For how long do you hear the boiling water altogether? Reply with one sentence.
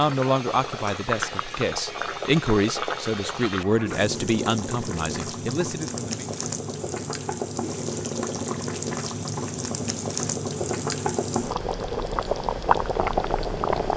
The boiling water can be heard for 14 seconds in total.